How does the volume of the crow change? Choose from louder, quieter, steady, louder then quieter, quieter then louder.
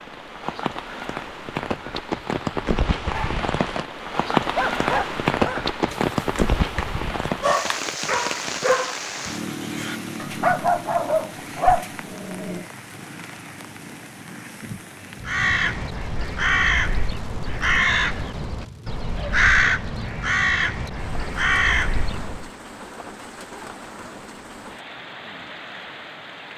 steady.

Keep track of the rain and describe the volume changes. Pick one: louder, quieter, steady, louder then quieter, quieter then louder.
quieter.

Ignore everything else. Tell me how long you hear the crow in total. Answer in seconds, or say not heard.
7 s.